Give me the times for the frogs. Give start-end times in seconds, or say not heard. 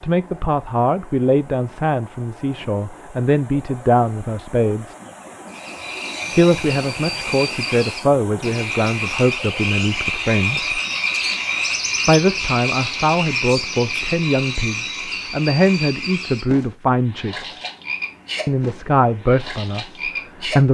5.5-20.7.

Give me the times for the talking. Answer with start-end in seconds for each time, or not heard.
0.0-5.0, 6.3-10.8, 12.1-17.6, 18.4-20.7.